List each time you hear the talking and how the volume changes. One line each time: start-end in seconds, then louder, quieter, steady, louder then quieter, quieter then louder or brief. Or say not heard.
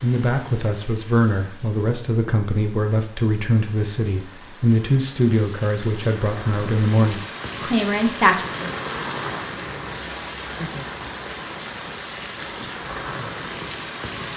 0.0-8.4 steady.